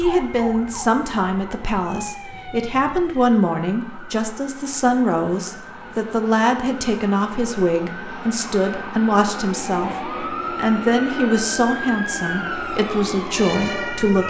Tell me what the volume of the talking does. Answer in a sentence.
The volume of the talking stays about the same.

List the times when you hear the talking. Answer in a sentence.
You can hear the talking from 0.0 to 14.2 s.